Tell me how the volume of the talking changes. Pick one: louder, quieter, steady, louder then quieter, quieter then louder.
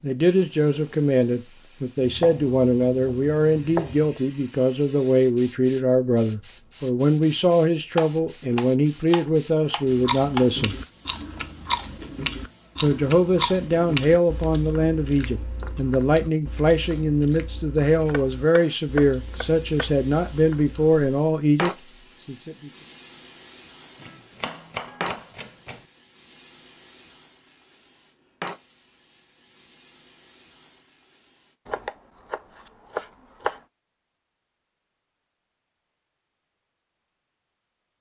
steady.